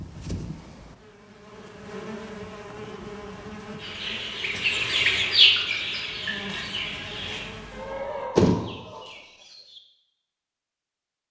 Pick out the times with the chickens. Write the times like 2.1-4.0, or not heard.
3.8-9.2.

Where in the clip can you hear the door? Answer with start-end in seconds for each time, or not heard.
8.3-9.8.